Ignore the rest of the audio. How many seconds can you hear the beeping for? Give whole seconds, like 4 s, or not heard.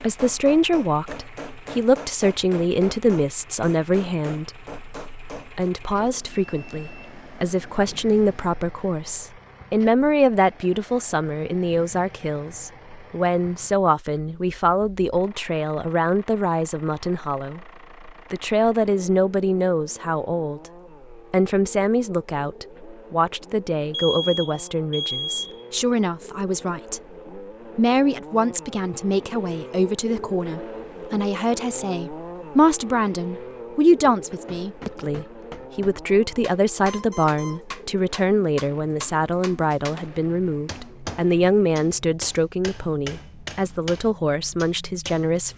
5 s.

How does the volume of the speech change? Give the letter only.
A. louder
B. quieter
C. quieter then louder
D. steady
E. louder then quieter
D.